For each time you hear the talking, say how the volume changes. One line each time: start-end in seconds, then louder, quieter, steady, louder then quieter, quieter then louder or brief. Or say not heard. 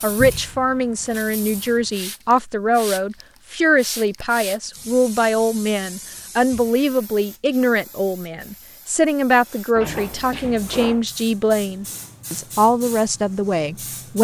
0.0-14.1 steady.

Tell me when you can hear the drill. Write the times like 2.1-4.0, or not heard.
not heard.